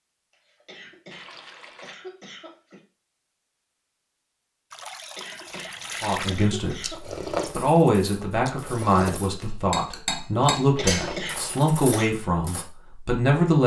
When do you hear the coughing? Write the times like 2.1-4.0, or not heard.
0.3-2.8, 5.0-7.3, 10.6-12.2.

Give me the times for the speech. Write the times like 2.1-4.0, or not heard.
6.0-13.6.